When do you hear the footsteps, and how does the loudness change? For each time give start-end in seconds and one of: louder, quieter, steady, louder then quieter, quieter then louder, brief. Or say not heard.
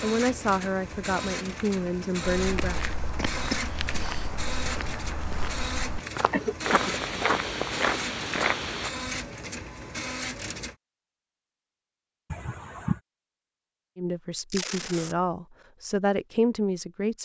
2.2-8.9 louder.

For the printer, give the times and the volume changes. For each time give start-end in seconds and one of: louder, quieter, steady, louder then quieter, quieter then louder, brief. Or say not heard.
0.0-10.8 steady.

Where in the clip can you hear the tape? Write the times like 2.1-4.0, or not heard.
14.5-15.2.